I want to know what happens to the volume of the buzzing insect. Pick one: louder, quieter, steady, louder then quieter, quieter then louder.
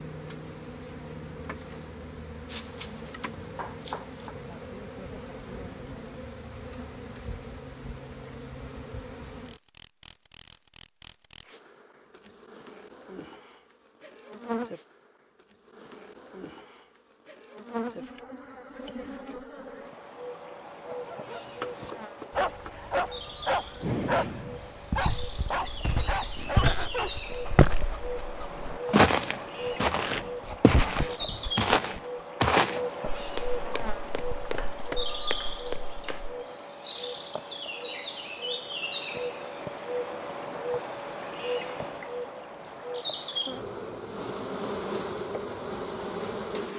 louder.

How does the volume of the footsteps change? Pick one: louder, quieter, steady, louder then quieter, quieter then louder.
louder then quieter.